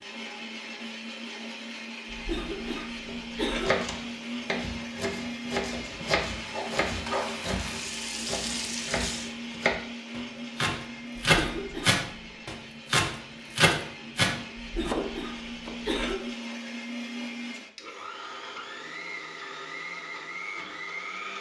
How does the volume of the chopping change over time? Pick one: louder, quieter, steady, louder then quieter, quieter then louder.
louder.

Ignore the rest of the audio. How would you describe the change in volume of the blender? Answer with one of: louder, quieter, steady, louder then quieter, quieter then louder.
steady.